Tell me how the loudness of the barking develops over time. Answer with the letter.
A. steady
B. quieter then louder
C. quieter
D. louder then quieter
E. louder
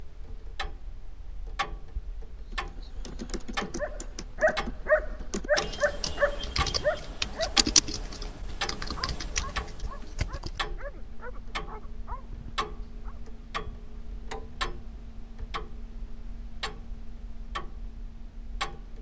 C.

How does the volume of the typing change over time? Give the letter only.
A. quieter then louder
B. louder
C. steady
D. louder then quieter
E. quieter
D.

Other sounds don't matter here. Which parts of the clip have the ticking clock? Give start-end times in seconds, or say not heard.
0.0-18.9.